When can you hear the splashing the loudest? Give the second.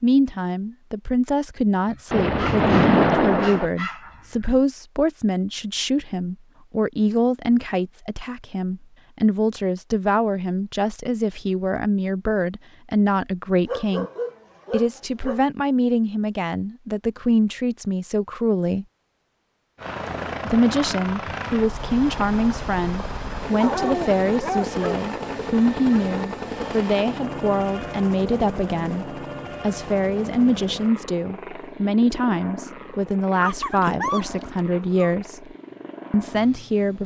3 s.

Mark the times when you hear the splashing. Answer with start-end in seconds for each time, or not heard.
2.1-3.7, 33.8-34.6.